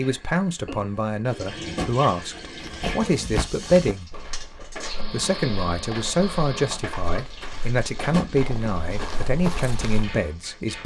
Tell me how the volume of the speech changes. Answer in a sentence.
The loudness of the speech stays about the same.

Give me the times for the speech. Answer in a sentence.
The speech can be heard from 0.0 to 4.1 s and from 4.9 to 10.8 s.